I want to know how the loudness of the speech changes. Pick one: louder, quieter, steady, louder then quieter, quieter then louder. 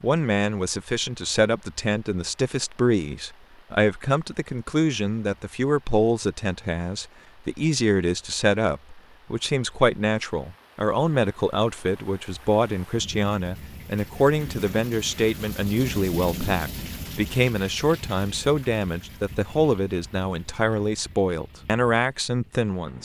steady.